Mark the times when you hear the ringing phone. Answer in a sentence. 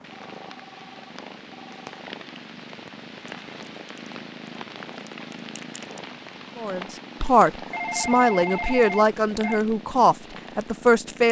The ringing phone can be heard from 0.1 to 1.8 s and from 7.7 to 9.6 s.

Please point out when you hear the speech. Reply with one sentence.
The speech can be heard from 6.5 to 11.2 s.